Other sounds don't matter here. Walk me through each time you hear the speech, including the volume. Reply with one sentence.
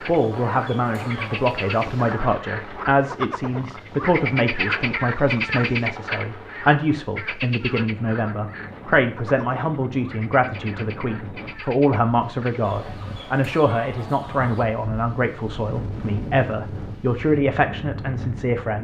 The speech can be heard from 0.1 to 18.7 s, at a steady volume.